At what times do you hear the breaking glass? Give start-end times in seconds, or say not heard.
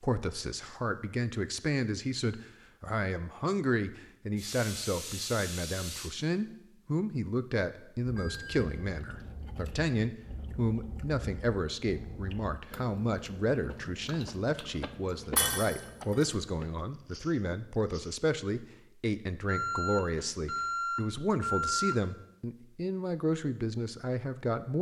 15.3-16.2.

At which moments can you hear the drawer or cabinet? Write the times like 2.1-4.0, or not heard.
not heard.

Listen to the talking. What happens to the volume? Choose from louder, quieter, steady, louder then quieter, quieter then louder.
steady.